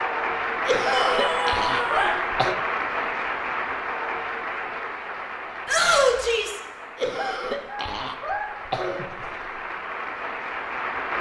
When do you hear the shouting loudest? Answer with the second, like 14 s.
6 s.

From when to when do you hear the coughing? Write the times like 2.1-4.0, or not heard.
0.7-2.5, 7.0-9.6.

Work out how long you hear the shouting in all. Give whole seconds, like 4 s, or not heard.
2 s.